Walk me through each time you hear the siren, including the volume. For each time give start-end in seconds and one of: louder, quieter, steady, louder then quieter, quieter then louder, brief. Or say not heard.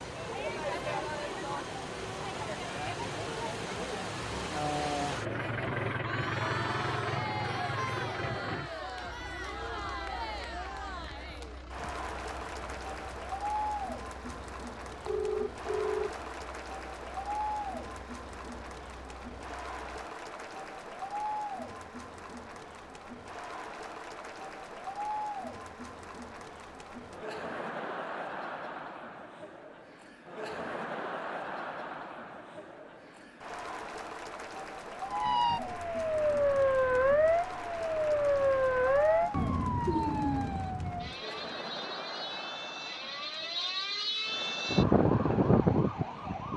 35.0-46.5 quieter then louder.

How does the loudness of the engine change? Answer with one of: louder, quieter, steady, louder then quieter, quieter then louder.
louder then quieter.